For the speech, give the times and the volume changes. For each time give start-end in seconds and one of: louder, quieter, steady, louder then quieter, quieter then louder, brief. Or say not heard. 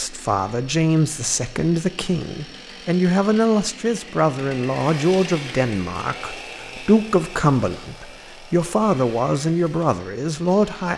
0.0-10.9 steady.